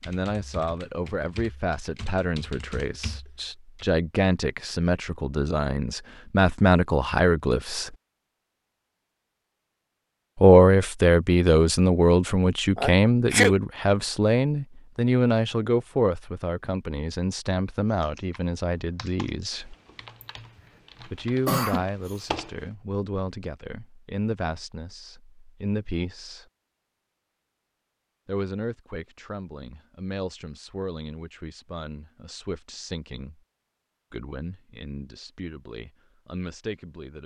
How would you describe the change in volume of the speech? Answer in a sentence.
The volume of the speech goes up, then down.